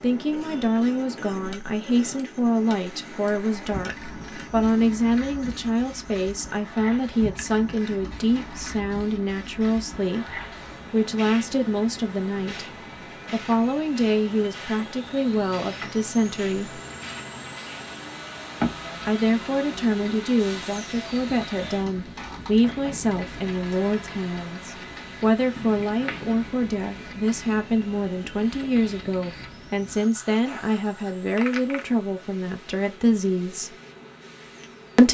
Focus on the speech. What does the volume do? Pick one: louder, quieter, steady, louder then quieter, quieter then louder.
steady.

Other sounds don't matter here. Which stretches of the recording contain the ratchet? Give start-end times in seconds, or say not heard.
not heard.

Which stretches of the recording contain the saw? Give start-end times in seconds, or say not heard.
not heard.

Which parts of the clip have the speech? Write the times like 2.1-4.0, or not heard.
0.0-12.7, 13.3-16.8, 19.1-33.8.